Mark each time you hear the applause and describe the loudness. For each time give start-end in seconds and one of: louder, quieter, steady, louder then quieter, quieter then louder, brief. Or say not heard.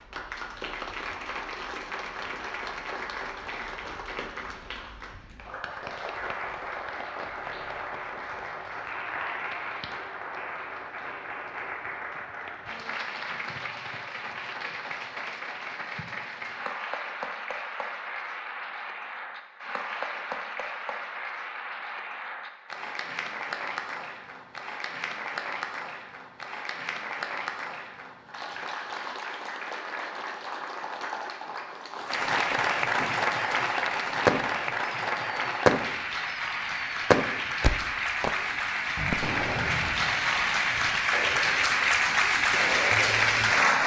0.0-43.8 louder.